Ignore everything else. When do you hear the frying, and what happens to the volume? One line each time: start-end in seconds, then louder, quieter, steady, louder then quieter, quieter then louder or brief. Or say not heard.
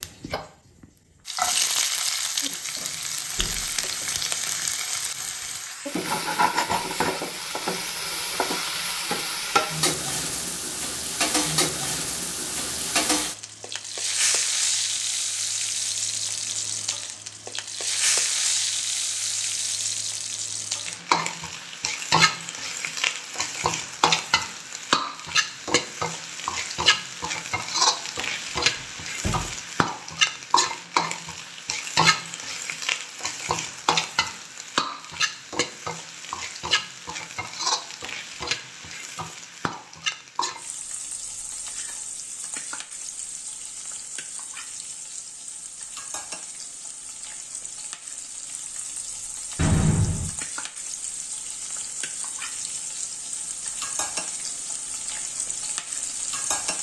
0.0-56.7 quieter.